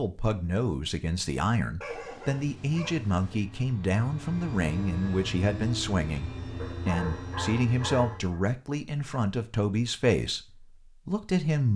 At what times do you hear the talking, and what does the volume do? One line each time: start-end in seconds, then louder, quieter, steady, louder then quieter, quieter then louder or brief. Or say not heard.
0.0-11.7 steady.